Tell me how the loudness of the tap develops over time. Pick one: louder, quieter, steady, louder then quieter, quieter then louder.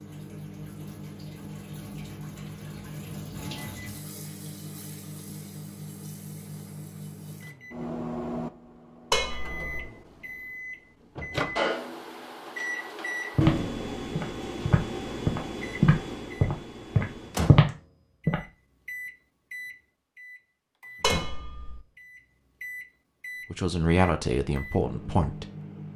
louder then quieter.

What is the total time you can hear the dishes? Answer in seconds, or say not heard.
2 s.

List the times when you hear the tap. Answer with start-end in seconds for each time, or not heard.
0.0-7.5.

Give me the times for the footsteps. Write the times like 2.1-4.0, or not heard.
13.3-18.4.